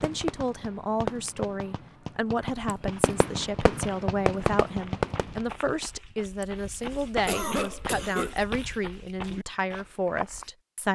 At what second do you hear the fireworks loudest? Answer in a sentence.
The loudest moment of the fireworks is at 4 seconds.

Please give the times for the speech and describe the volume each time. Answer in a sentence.
The speech can be heard from 0.0 to 10.9 s, at a steady volume.